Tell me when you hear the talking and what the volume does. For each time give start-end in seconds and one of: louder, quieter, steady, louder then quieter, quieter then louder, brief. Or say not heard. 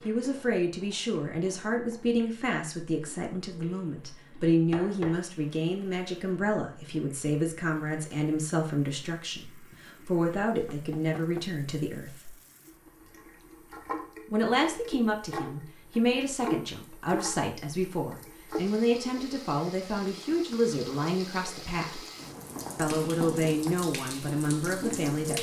0.1-12.3 steady
14.3-22.0 steady
22.8-25.3 brief.